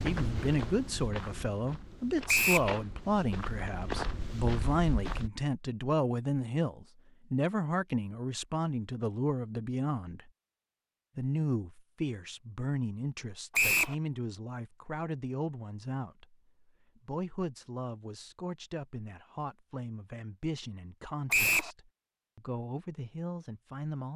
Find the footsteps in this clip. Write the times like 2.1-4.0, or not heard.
0.0-5.3.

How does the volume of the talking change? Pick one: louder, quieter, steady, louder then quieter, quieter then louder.
quieter.